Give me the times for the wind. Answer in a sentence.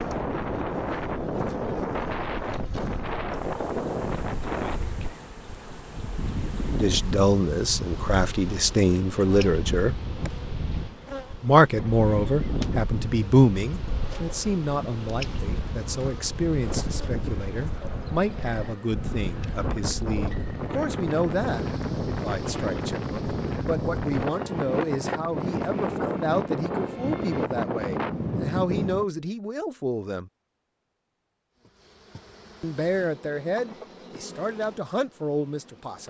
You can hear the wind from 0.0 to 29.1 s.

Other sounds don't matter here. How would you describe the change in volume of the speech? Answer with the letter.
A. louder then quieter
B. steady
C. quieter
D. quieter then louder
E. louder
C.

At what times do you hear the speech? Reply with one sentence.
The speech can be heard from 6.8 to 10.0 s, from 11.4 to 30.3 s and from 32.6 to 36.0 s.